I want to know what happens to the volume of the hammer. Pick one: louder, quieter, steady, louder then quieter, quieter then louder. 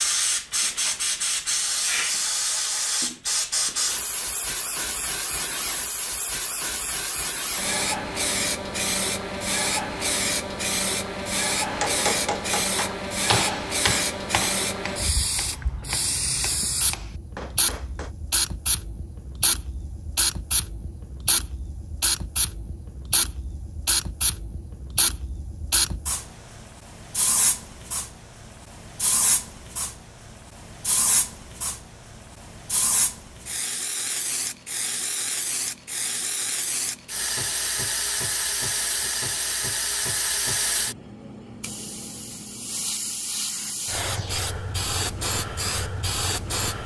quieter.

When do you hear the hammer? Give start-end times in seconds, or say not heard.
11.7-18.1.